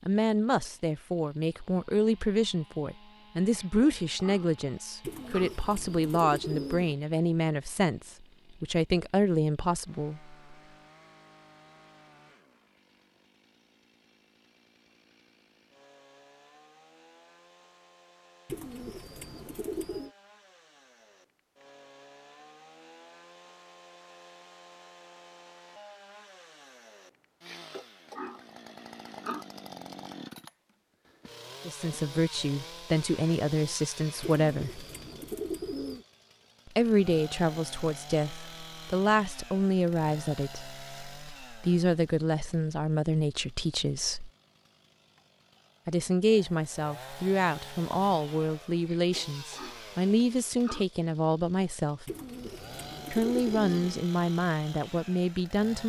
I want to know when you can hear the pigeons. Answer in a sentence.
You can hear the pigeons from 5.0 to 7.0 s, from 18.4 to 20.1 s, from 34.2 to 36.0 s and from 52.0 to 54.0 s.